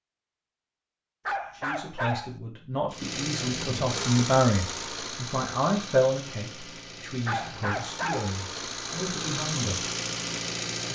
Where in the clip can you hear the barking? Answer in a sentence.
You can hear the barking from 1.2 to 2.3 s and from 7.2 to 8.3 s.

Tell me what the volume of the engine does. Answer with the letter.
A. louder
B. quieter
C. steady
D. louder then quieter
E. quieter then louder
E.